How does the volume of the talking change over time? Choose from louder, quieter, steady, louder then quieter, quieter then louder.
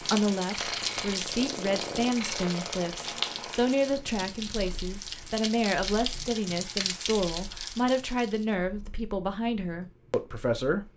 steady.